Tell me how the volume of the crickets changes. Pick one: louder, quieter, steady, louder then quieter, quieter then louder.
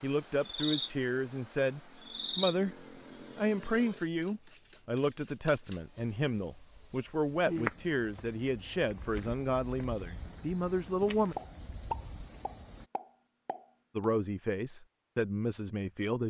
quieter then louder.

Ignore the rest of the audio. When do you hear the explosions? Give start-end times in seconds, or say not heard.
11.3-14.1.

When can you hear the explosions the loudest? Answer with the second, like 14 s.
12 s.